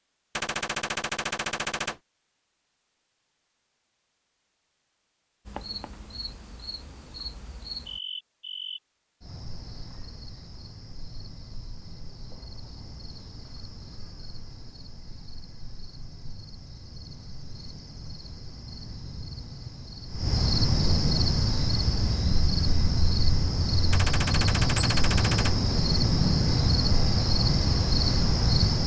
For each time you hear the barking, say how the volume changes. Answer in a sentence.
The barking can't be heard in this clip.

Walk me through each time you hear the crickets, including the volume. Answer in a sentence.
You can hear the crickets from 5.5 to 28.8 s, getting quieter then louder.